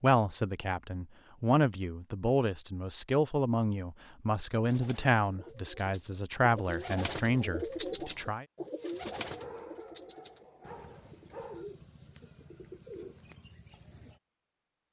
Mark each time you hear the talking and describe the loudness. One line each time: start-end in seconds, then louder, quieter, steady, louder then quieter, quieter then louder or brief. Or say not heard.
0.0-8.4 steady.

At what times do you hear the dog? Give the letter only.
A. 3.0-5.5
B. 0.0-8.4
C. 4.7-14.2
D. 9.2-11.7
D.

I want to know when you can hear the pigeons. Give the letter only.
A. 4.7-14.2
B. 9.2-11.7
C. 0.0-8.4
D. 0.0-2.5
A.